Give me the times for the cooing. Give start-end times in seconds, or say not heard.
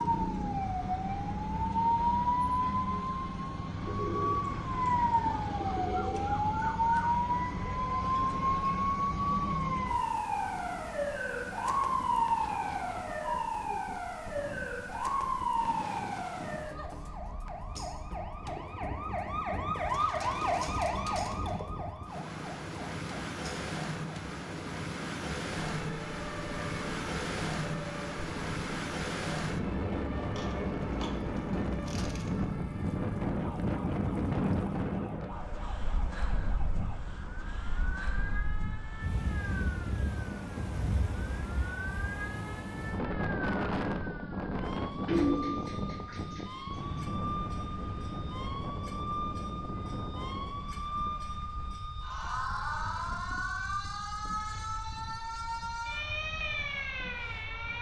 3.9-6.3, 19.9-21.6, 30.4-32.4, 45.0-47.0.